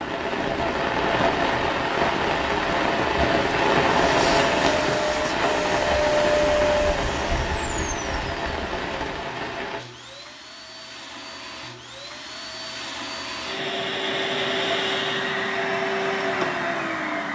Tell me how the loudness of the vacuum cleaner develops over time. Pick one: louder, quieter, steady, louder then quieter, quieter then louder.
quieter then louder.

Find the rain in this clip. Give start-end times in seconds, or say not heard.
0.0-9.8.